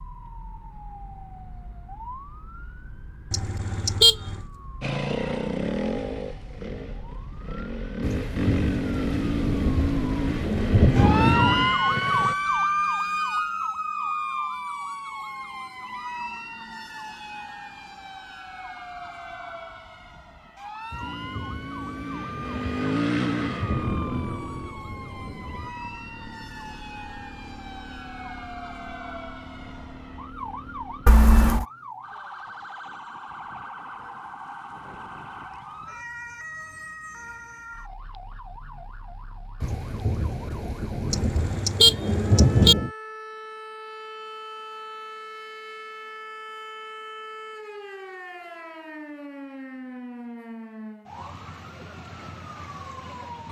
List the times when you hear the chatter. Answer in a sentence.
You can't hear the chatter here.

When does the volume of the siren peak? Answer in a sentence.
The volume of the siren peaks at 12 seconds.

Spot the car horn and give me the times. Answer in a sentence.
You can hear the car horn from 3.3 to 4.4 s, from 31.1 to 31.6 s and from 41.1 to 42.8 s.